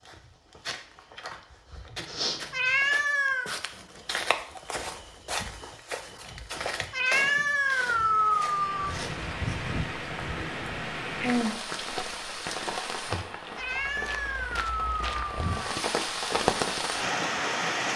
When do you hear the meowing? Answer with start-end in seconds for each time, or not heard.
2.5-3.5, 6.9-8.9, 13.6-15.8.